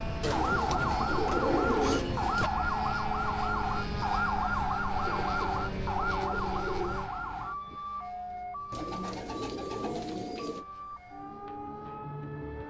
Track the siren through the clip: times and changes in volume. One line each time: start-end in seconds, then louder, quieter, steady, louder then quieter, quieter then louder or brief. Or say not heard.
0.0-12.6 quieter.